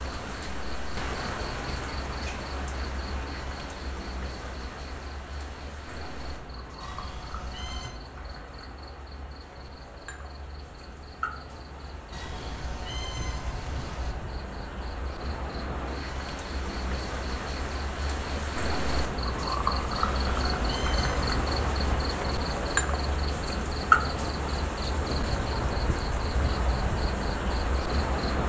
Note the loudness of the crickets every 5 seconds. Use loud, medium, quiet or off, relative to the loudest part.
medium, quiet, quiet, medium, loud, loud.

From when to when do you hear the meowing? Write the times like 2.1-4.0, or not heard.
6.8-8.0, 12.1-14.2, 19.9-21.9.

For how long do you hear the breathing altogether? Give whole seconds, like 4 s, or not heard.
not heard.